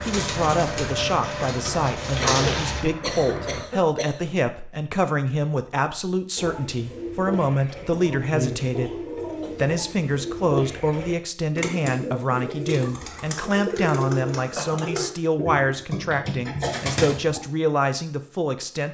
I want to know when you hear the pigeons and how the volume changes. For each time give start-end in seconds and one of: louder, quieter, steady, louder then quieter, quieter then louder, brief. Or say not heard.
0.0-2.9 brief
6.3-17.4 steady.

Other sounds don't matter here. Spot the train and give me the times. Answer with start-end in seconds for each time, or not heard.
0.0-3.7.